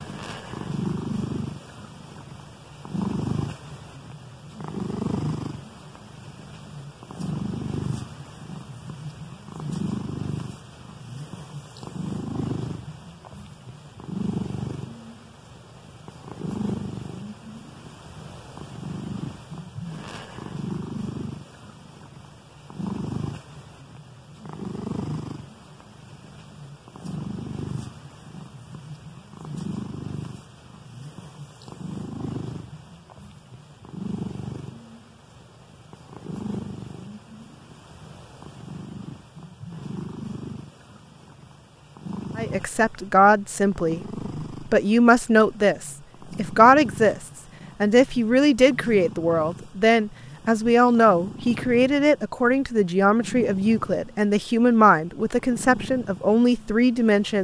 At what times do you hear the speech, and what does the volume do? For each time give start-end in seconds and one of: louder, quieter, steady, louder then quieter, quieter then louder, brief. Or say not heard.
42.4-57.3 steady.